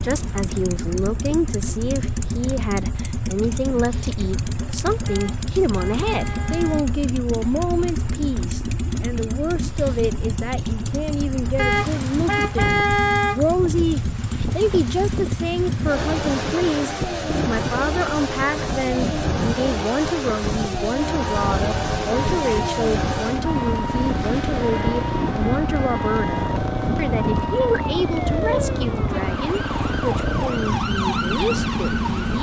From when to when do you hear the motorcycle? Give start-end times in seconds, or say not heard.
0.0-32.3.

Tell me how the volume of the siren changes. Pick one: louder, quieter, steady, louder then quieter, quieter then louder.
steady.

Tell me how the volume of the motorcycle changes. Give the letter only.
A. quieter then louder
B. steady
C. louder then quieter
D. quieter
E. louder
B.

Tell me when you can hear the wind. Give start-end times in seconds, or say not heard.
0.0-32.3.